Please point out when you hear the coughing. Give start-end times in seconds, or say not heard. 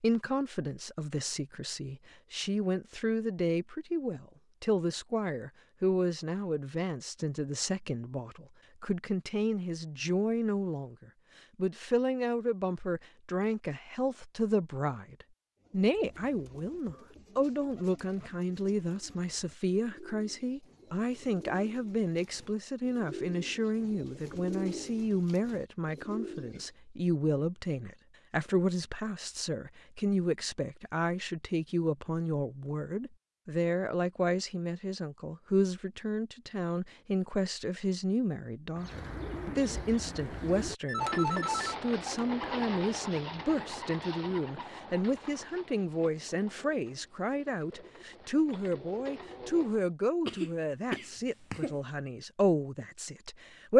50.2-51.8.